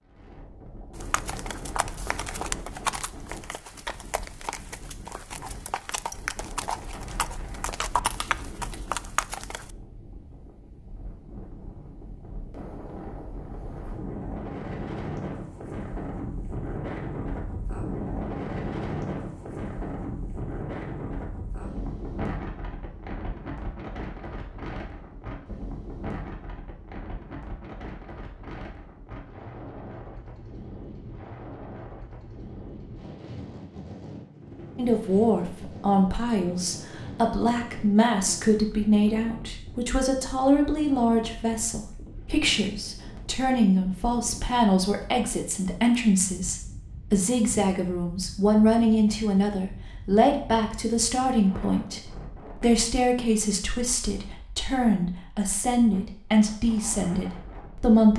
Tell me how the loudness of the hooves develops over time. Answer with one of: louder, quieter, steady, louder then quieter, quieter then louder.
quieter then louder.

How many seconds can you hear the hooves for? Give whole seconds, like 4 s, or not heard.
9 s.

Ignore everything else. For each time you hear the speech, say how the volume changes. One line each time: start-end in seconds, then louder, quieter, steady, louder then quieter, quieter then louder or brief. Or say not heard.
34.8-58.1 steady.